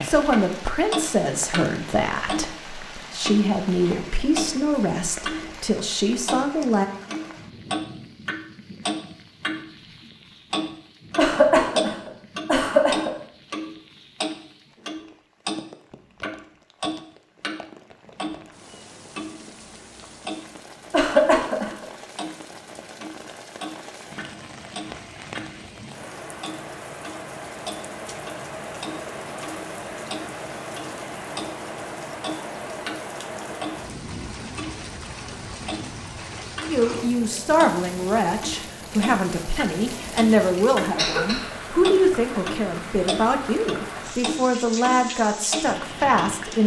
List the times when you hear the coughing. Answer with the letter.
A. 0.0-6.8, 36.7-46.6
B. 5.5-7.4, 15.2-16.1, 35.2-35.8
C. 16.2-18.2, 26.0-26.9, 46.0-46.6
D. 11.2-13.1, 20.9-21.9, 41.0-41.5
D.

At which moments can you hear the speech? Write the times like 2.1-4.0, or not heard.
0.0-6.8, 36.7-46.6.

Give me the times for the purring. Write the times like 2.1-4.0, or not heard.
not heard.